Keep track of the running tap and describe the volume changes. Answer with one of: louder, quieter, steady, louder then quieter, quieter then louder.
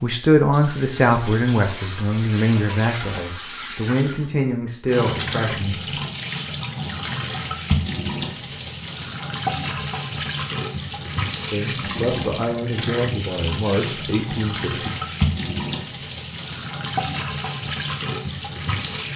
steady.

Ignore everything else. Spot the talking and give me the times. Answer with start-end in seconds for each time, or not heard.
0.0-5.8, 11.5-14.9.